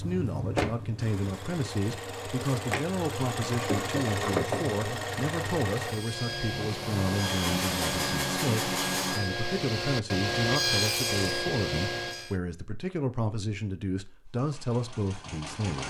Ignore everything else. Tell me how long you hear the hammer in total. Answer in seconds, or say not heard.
not heard.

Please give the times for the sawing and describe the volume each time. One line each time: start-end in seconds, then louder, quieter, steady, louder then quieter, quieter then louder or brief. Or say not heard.
5.8-12.3 louder.